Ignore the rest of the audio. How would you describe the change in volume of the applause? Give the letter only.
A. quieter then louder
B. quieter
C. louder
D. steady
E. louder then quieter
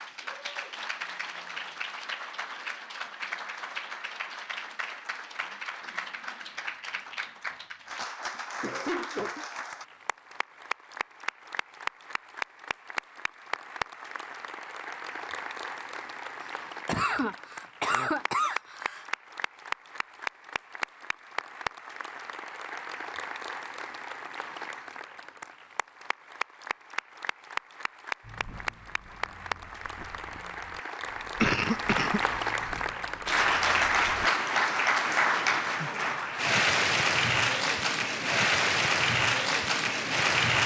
C.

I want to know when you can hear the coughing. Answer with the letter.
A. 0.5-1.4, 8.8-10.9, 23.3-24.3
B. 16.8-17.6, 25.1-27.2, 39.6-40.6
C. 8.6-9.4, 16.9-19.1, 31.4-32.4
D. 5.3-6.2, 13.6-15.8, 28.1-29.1
C.